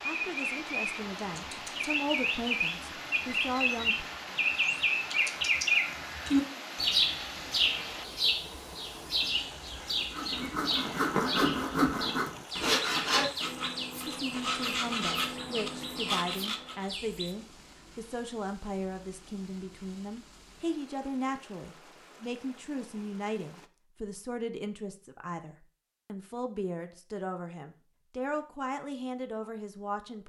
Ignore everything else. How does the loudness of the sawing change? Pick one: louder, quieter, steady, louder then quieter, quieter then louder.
quieter.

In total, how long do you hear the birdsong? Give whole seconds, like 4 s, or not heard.
17 s.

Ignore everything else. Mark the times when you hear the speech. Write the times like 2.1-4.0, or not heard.
0.0-4.0, 14.1-30.2.